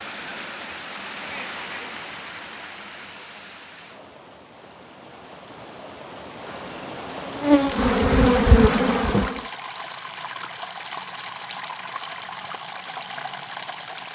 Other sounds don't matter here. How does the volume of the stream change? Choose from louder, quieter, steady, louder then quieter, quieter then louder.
quieter then louder.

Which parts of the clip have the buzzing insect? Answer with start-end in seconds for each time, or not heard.
6.5-9.4.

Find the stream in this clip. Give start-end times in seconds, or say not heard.
0.0-14.1.